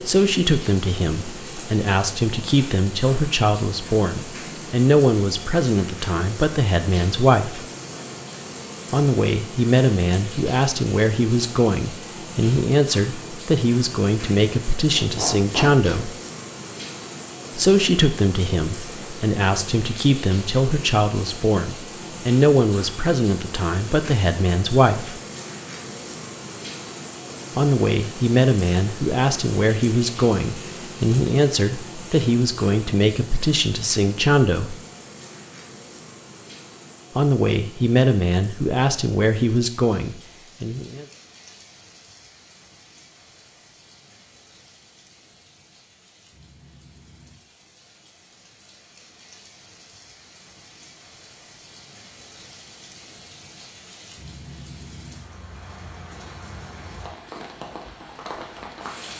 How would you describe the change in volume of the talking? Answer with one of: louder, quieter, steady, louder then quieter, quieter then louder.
steady.